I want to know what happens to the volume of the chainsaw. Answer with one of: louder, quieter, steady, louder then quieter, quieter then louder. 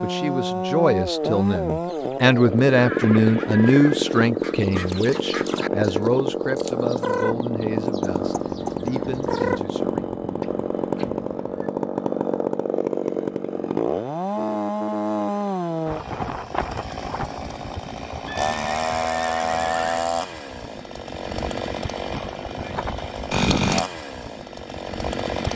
steady.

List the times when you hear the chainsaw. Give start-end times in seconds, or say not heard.
0.0-25.5.